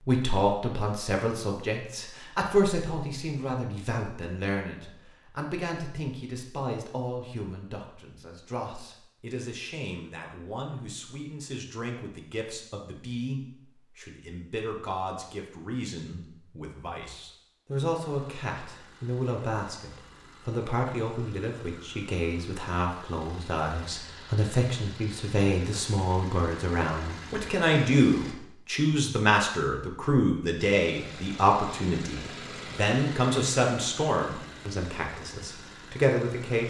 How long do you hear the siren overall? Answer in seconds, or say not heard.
not heard.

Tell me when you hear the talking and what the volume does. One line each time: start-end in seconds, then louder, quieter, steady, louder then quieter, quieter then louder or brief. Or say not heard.
0.1-36.6 quieter then louder.